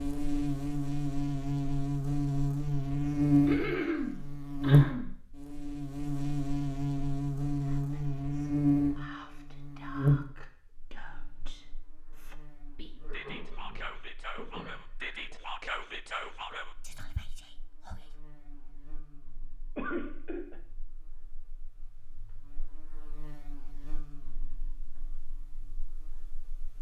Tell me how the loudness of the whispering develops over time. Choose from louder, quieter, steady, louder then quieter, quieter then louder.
louder.